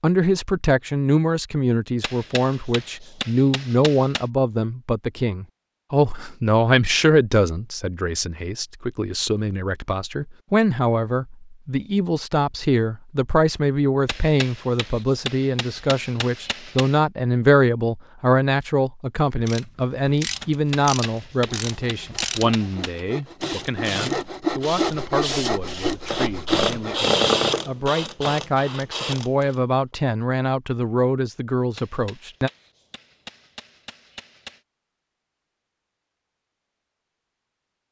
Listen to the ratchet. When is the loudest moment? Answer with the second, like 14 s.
27 s.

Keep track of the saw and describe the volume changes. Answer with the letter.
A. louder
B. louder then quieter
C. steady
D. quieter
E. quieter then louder
A.